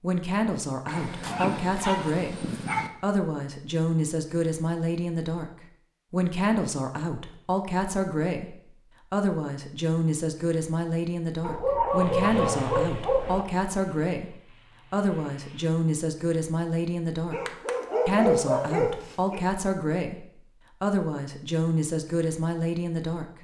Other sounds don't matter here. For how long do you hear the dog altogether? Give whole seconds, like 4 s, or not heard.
6 s.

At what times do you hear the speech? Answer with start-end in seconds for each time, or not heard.
0.0-5.5, 6.1-17.4, 18.1-23.2.